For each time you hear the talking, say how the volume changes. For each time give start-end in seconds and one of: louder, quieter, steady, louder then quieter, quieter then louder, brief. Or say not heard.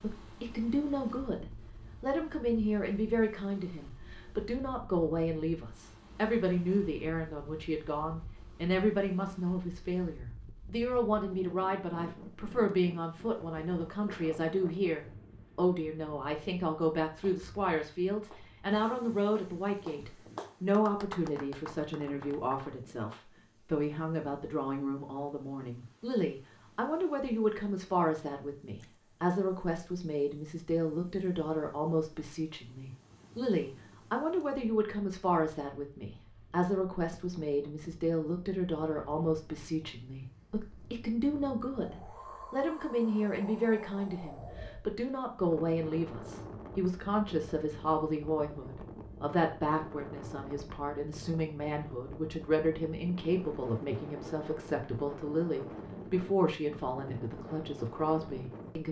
0.0-58.8 steady.